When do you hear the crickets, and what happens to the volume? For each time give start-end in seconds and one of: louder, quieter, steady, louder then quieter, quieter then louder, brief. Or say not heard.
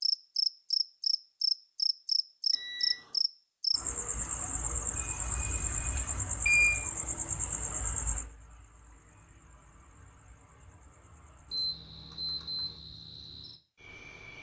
0.0-14.3 quieter then louder.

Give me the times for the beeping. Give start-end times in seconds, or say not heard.
2.5-3.1, 5.2-6.8, 11.5-12.8.